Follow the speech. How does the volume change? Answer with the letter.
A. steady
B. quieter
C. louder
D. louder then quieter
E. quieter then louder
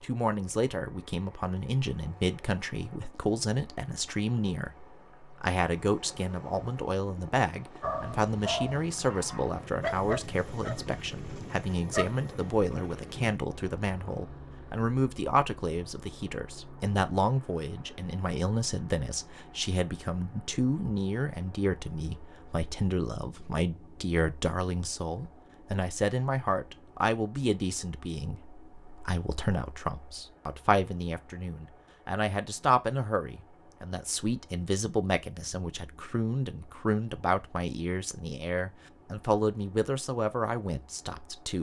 A.